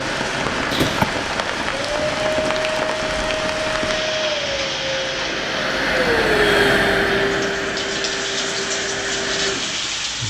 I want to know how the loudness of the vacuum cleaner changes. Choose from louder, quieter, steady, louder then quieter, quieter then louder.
louder then quieter.